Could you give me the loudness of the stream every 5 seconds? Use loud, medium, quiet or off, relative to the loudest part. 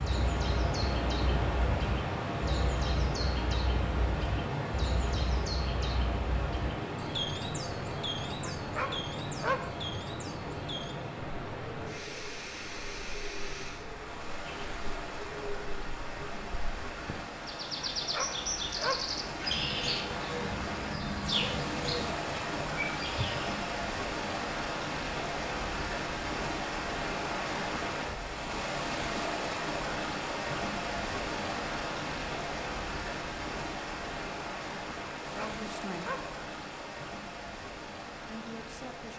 loud, loud, medium, medium, loud, loud, loud, medium.